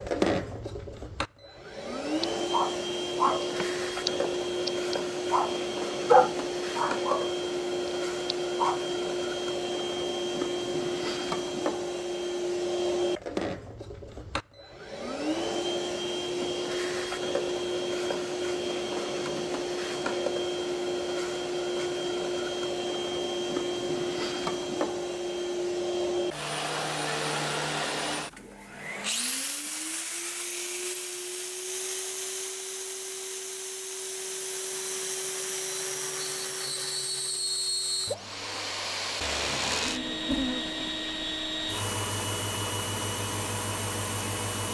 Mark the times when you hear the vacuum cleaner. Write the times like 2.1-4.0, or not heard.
0.0-44.6.